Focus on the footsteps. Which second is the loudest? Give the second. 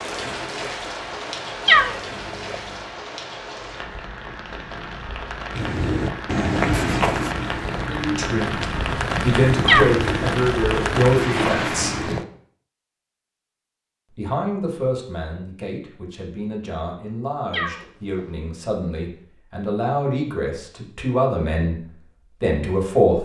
7 s.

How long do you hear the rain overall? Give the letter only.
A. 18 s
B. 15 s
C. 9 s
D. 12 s
D.